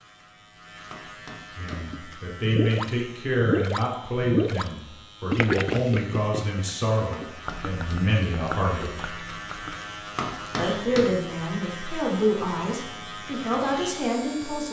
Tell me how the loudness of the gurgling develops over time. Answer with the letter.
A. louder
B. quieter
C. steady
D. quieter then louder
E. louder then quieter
B.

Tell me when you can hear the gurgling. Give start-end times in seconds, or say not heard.
1.7-4.7, 5.3-9.8.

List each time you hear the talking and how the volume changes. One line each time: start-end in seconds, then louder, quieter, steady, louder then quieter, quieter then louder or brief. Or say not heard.
1.6-9.1 steady
10.6-14.6 steady.